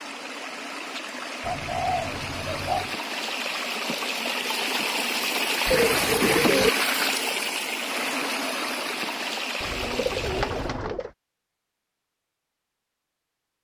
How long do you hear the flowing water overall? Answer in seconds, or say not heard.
11 s.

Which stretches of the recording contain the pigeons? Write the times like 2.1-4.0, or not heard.
1.4-3.0, 5.7-6.7, 9.6-11.1.